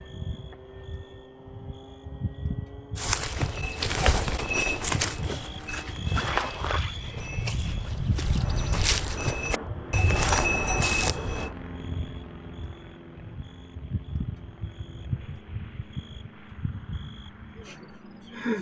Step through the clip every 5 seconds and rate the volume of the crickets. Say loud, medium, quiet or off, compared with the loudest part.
loud, loud, medium, loud.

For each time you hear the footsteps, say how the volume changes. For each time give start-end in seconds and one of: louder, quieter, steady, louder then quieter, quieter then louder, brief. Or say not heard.
3.0-11.5 quieter then louder.